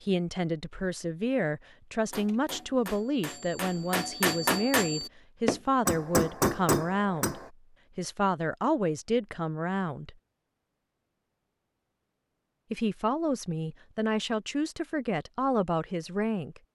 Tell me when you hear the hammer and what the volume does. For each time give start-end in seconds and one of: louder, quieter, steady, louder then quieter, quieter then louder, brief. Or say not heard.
2.1-7.5 louder.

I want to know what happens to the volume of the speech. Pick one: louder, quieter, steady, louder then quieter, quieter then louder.
steady.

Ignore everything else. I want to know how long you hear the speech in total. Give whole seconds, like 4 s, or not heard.
14 s.